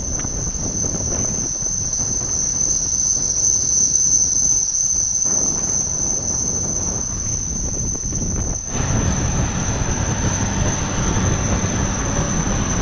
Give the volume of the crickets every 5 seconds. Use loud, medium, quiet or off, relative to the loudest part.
loud, loud, medium.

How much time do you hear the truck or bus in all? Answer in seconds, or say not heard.
13 s.